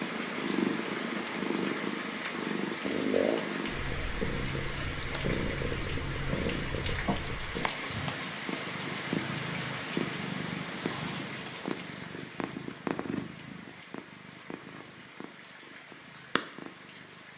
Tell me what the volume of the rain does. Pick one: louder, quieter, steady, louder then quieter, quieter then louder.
quieter.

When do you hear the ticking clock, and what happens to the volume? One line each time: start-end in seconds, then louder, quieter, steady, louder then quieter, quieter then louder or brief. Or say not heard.
not heard.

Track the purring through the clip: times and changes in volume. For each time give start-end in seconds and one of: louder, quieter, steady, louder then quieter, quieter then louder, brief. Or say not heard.
0.0-17.3 quieter.